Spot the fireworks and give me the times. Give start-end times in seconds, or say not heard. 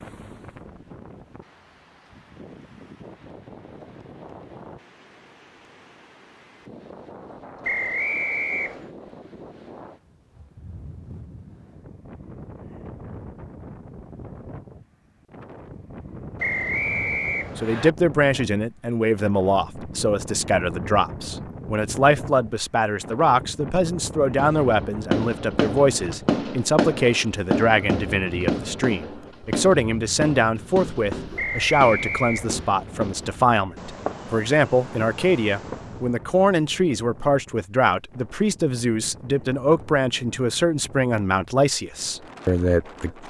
24.4-36.1.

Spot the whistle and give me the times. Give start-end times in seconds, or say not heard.
7.6-8.9, 16.4-17.9, 31.4-32.8.